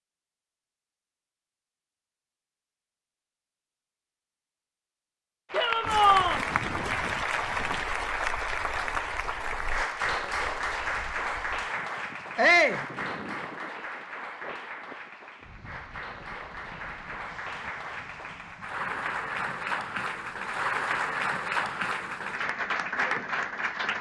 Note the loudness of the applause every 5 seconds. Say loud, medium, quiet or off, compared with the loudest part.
off, loud, loud, medium, loud.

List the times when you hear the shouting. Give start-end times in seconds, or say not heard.
5.5-6.4, 12.3-12.8.